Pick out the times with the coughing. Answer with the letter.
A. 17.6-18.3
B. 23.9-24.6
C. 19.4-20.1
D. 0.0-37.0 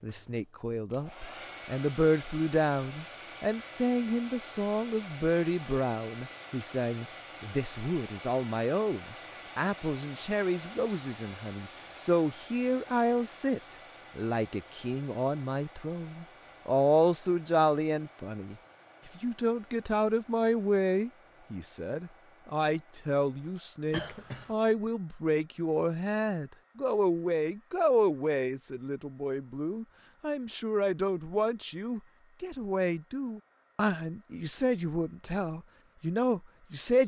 B.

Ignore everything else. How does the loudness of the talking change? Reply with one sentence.
The volume of the talking stays about the same.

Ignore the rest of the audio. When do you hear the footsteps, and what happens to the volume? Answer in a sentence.
The footsteps can't be heard in this clip.